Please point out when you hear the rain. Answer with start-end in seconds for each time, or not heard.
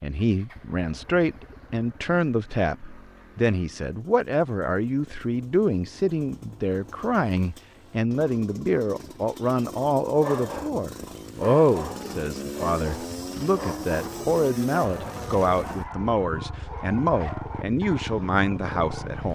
not heard.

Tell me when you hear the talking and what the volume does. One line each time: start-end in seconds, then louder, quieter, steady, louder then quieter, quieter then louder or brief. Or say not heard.
0.0-19.3 steady.